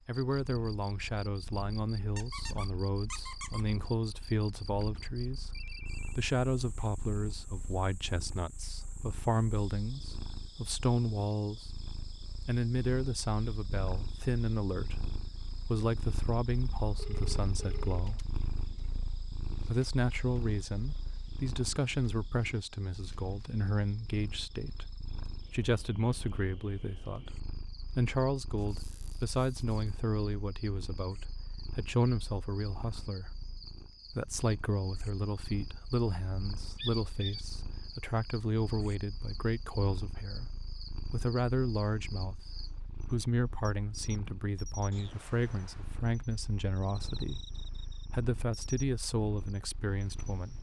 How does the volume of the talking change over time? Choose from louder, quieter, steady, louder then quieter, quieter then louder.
steady.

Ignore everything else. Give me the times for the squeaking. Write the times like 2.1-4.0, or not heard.
2.1-3.6, 28.6-29.9, 36.8-37.5.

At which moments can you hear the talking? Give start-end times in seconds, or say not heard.
0.1-11.8, 12.4-18.2, 19.6-24.9, 25.5-33.3, 34.1-40.5, 41.1-50.5.